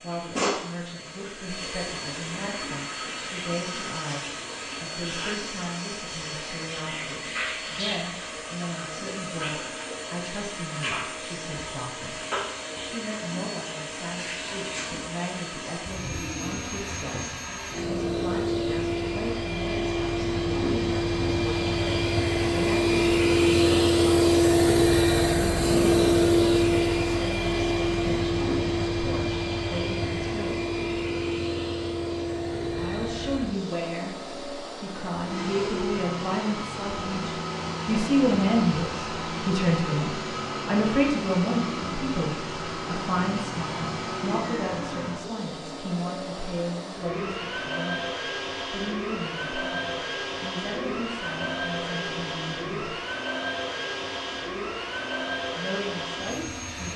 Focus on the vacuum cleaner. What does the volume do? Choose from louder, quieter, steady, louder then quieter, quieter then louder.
louder then quieter.